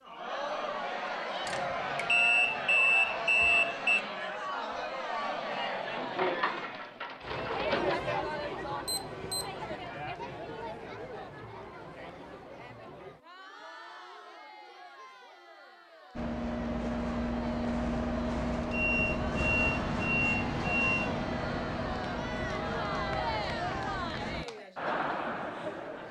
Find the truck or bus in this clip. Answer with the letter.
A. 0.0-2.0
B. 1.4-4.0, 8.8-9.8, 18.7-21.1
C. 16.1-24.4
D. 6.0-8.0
C.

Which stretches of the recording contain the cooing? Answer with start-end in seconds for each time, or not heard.
6.0-8.0.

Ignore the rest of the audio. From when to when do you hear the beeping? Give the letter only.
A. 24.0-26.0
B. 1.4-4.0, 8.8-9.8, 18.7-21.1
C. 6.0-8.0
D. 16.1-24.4
B.